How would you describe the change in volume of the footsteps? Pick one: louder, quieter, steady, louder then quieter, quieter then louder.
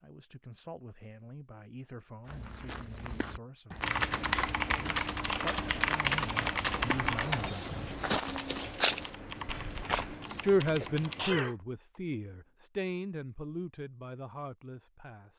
louder.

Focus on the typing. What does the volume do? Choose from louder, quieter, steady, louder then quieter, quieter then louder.
quieter.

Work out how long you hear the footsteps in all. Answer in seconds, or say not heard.
8 s.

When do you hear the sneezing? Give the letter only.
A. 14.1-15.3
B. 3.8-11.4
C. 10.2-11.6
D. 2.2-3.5
C.